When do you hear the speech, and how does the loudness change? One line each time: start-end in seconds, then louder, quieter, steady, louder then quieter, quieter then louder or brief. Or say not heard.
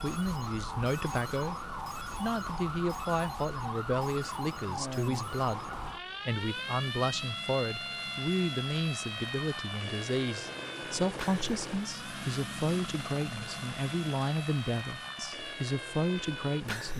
0.0-16.9 steady.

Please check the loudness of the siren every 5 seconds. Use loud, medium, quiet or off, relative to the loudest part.
loud, loud, medium, loud.